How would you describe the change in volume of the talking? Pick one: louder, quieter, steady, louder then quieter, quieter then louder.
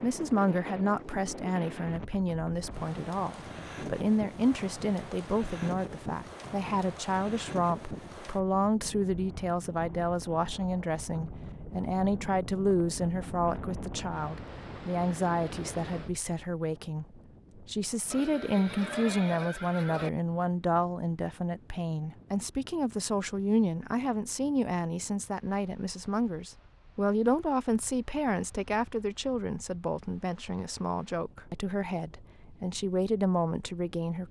steady.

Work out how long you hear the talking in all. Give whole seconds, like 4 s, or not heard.
34 s.